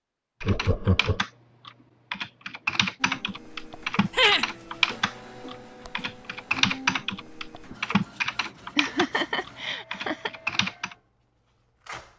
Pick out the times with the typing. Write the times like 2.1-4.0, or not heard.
0.4-10.9.